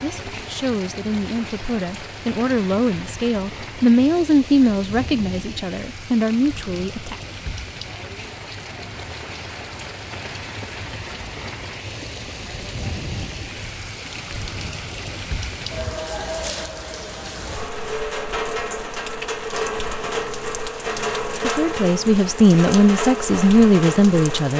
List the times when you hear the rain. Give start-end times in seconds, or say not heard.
0.0-24.5.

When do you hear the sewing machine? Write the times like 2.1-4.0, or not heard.
not heard.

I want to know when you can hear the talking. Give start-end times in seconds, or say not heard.
0.0-7.2, 21.4-24.5.